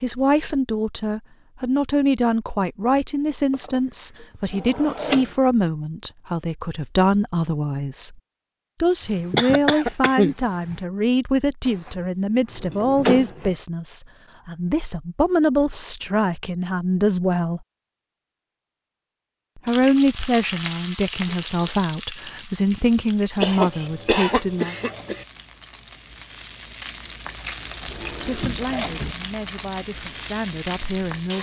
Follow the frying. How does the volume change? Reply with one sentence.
The loudness of the frying goes down, then up.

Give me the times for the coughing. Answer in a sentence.
You can hear the coughing from 9.0 to 10.8 s and from 23.4 to 25.2 s.